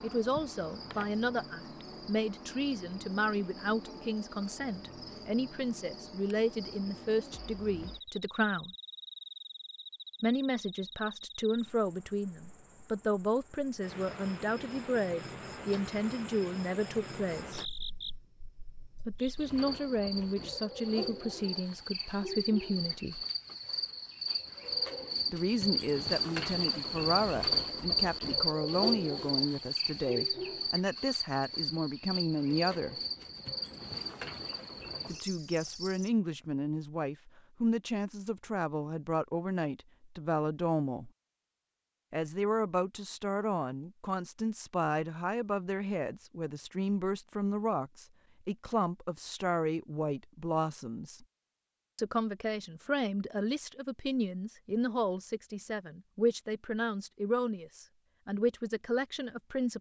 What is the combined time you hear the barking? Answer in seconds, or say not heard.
not heard.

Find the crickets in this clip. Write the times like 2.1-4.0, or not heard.
0.0-36.1.